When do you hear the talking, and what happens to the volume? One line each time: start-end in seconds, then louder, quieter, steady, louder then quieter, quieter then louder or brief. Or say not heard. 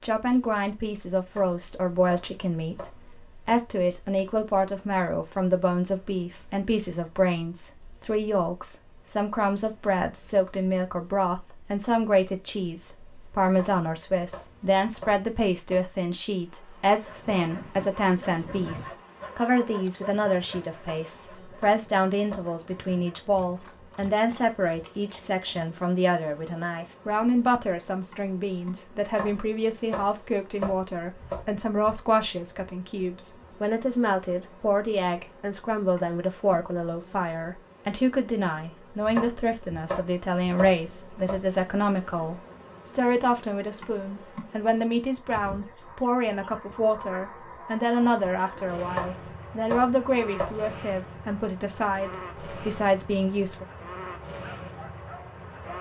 0.0-53.6 steady.